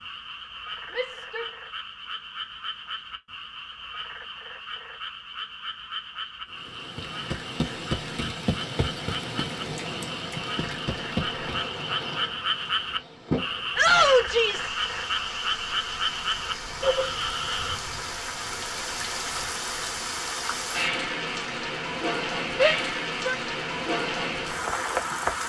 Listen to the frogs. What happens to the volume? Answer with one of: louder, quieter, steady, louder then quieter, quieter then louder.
louder.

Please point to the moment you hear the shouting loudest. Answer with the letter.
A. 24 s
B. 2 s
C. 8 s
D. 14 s
D.